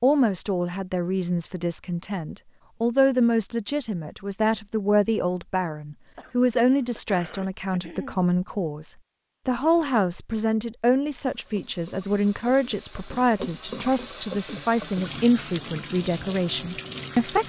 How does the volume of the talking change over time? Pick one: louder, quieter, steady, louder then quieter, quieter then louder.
steady.